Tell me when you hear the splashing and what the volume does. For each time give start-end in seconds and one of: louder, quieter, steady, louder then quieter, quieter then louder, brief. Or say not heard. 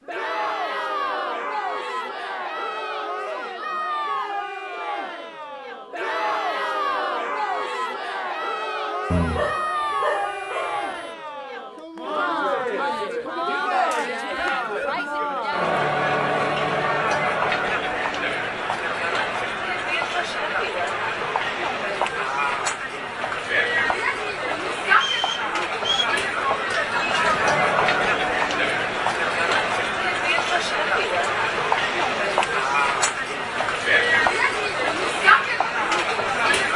not heard.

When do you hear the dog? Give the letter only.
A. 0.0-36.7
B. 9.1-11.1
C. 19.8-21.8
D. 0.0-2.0
B.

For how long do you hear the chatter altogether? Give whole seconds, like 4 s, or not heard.
37 s.